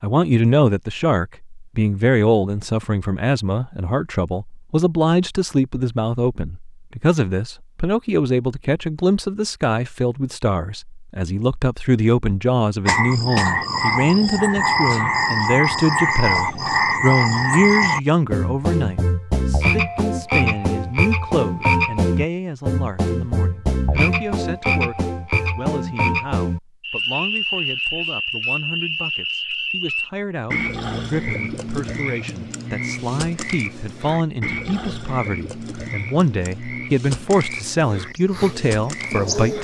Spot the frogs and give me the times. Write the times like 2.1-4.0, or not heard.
12.8-39.5.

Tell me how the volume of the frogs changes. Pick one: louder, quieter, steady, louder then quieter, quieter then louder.
quieter.